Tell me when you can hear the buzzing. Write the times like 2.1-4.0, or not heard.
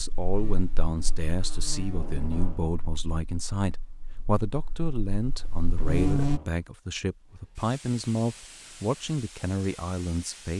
0.0-6.4.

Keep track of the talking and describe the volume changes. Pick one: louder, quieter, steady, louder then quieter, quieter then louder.
steady.